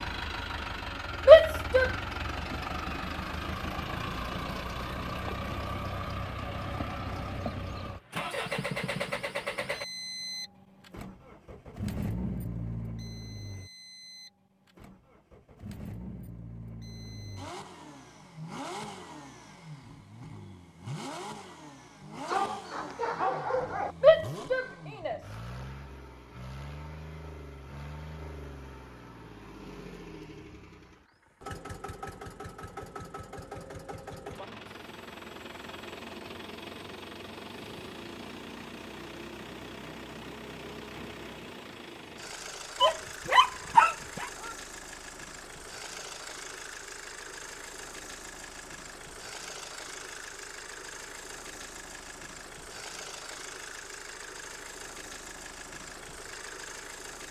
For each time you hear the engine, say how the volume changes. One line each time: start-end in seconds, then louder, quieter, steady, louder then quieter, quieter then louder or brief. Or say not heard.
0.0-57.2 quieter.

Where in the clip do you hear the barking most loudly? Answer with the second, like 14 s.
44 s.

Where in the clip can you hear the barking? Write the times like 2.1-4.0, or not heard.
22.2-23.9, 42.8-44.3.